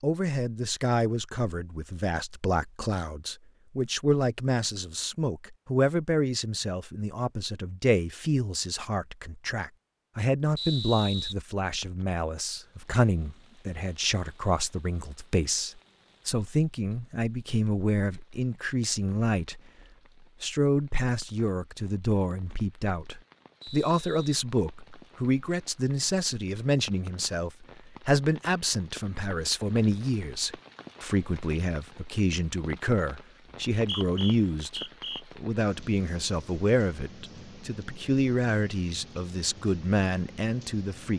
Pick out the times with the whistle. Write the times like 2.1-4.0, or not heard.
10.6-12.1, 23.6-25.1, 33.8-35.2.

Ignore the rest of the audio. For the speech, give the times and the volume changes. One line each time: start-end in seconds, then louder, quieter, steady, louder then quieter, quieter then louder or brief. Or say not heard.
0.0-19.6 steady
20.4-41.1 steady.